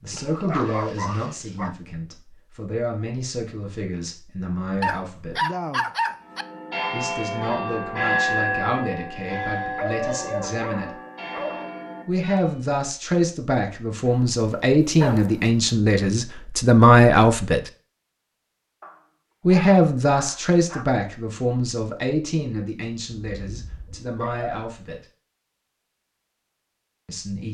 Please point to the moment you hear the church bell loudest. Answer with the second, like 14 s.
8 s.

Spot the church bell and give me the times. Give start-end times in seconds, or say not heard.
6.2-12.6.